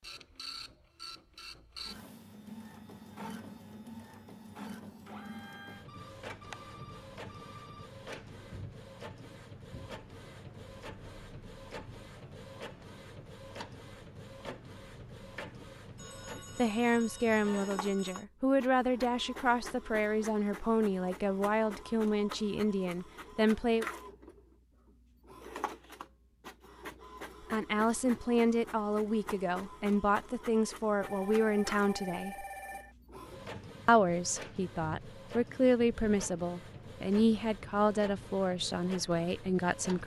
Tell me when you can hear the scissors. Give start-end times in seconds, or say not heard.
not heard.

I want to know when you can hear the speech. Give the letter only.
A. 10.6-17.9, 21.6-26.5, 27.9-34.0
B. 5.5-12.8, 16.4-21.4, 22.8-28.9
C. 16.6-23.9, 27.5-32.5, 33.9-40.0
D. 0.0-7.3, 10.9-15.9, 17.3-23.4
C.